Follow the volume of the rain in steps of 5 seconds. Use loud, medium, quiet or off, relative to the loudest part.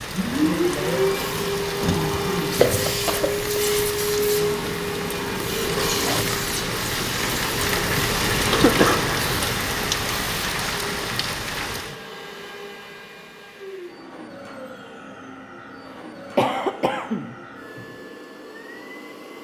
medium, loud, loud, off.